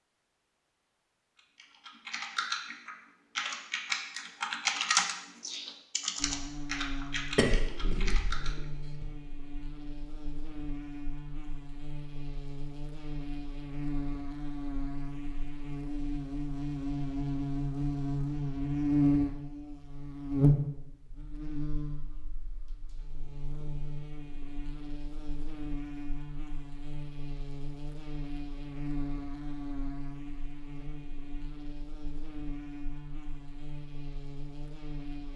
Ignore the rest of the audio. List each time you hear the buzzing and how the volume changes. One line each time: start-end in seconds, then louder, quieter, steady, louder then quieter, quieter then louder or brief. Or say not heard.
6.2-35.3 louder then quieter.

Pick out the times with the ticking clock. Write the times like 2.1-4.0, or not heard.
not heard.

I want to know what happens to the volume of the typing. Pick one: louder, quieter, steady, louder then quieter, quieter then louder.
louder then quieter.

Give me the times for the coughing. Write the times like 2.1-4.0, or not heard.
7.2-9.2.